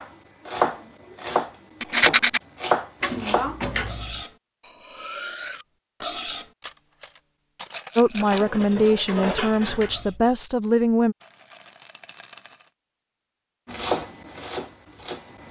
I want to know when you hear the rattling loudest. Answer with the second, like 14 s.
2 s.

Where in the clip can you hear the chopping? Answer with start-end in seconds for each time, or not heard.
0.0-3.6, 13.7-15.4.